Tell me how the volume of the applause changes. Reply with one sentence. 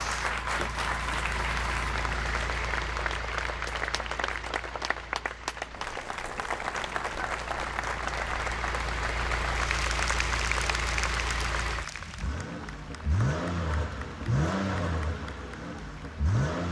The volume of the applause goes down.